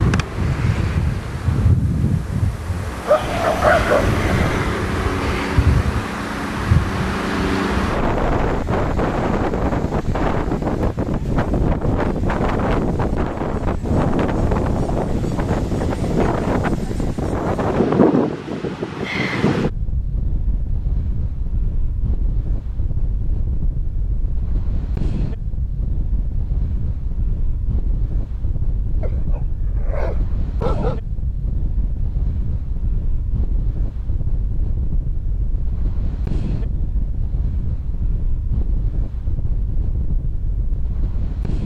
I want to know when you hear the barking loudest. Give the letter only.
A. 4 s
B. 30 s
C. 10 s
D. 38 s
A.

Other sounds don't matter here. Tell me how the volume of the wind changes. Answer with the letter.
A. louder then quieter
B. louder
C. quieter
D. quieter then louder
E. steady
C.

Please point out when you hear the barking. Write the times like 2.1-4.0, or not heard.
3.0-4.7, 29.0-30.9.